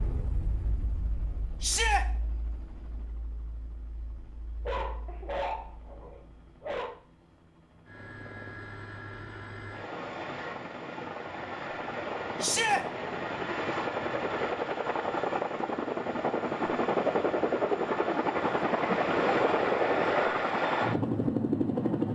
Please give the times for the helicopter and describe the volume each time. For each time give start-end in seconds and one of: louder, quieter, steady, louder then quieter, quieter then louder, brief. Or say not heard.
0.0-22.1 louder.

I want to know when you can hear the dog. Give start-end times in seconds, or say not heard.
4.7-7.0.